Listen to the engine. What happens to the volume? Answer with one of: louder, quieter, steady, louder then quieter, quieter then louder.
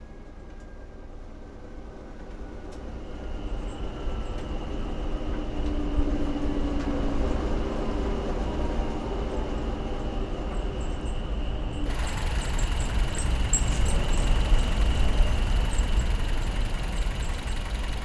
louder then quieter.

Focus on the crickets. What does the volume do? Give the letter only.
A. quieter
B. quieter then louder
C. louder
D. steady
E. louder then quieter
C.